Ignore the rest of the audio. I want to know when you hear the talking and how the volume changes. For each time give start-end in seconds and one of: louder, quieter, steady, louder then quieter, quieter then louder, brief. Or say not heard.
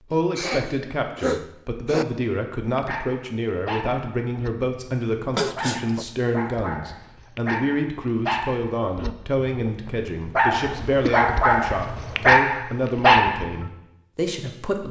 0.1-14.8 steady.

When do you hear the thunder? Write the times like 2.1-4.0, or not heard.
not heard.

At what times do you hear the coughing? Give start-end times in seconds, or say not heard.
0.1-2.0, 5.3-6.0, 10.5-12.4.